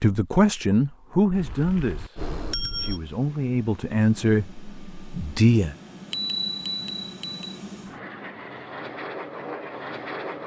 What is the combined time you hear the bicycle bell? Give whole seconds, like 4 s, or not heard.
3 s.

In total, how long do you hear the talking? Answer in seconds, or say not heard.
6 s.